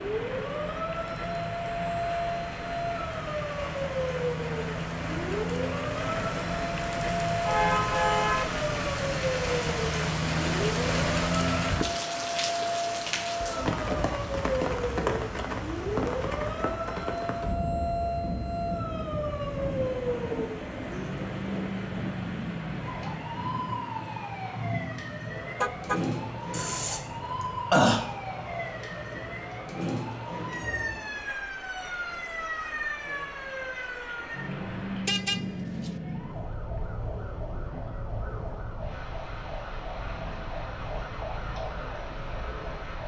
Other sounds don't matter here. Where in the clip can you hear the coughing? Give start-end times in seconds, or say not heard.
26.5-28.1.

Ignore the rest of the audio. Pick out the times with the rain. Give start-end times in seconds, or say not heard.
0.0-43.0.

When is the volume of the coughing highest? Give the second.
28 s.